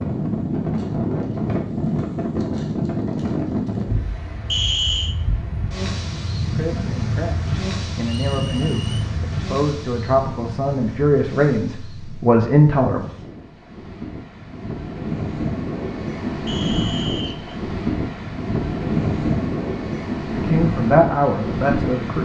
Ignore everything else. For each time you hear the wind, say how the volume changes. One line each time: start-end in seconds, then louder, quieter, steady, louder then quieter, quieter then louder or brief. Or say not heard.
0.0-22.2 quieter then louder.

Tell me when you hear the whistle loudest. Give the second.
5 s.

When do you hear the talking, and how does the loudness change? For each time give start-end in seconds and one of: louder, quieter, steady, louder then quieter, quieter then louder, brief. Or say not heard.
6.5-13.1 louder
20.4-22.2 brief.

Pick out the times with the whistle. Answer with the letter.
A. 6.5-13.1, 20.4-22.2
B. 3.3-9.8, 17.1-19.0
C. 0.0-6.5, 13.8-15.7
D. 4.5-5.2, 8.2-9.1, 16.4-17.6
D.